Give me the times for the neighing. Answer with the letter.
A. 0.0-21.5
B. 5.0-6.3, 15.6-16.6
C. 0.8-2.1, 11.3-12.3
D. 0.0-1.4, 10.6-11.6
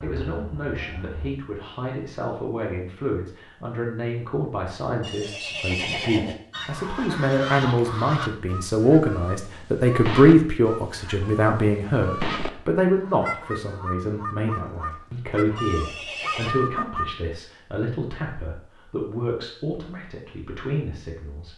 B.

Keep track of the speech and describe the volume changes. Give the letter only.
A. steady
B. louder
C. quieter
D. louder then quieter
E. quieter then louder
D.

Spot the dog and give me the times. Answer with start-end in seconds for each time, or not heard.
not heard.